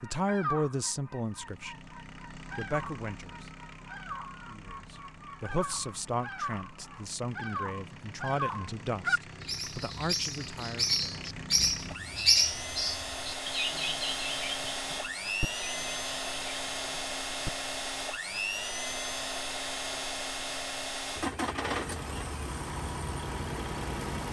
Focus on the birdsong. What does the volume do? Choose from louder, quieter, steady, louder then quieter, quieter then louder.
louder then quieter.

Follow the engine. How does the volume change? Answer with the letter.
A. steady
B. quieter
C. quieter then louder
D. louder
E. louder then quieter
D.